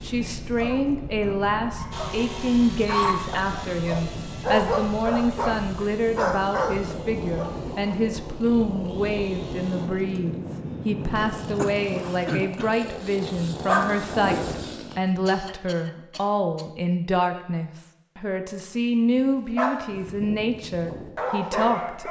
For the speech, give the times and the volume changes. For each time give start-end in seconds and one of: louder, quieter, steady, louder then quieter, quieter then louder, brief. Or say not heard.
0.0-22.0 steady.